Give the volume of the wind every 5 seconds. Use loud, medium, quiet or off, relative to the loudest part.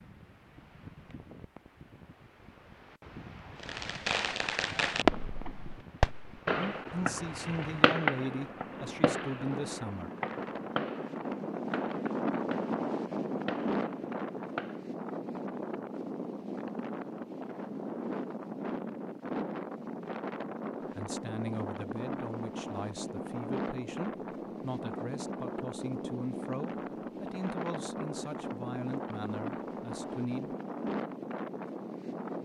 quiet, medium, loud, loud, loud, loud, loud.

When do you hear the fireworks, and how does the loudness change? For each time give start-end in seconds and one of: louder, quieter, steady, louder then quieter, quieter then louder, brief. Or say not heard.
3.6-14.8 quieter.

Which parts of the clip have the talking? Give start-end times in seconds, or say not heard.
6.5-10.1, 20.9-30.6.